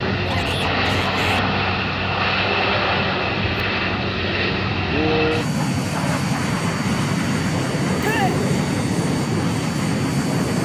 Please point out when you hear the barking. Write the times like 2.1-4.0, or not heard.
not heard.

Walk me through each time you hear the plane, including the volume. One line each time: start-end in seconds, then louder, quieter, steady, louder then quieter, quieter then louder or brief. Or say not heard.
0.0-10.6 steady.